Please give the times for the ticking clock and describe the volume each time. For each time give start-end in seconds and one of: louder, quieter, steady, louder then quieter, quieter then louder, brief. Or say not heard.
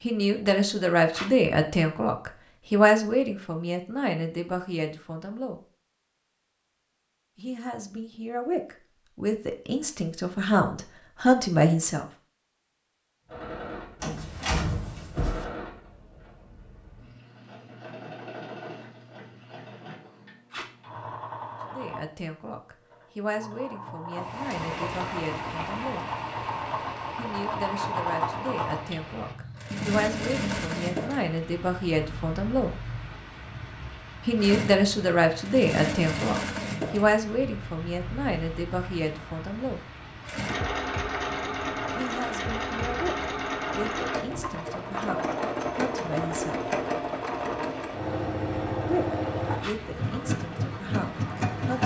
not heard.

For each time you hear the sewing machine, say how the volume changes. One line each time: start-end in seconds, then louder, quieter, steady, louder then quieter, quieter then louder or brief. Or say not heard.
13.2-51.8 louder.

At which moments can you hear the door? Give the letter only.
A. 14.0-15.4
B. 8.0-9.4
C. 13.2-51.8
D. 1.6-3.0
A.